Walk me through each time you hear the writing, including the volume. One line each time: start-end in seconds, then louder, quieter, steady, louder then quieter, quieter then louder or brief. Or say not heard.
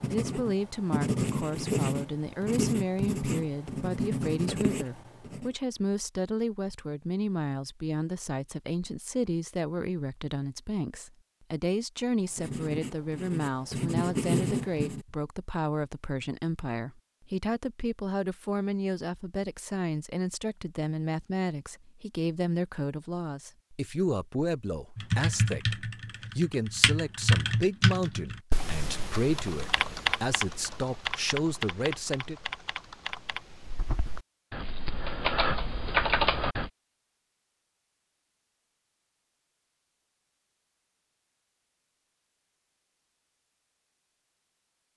0.0-5.5 steady
12.3-15.1 brief.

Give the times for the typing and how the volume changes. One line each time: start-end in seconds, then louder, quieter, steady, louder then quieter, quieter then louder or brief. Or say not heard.
24.9-36.7 quieter then louder.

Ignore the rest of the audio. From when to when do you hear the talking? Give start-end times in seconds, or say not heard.
0.1-32.4.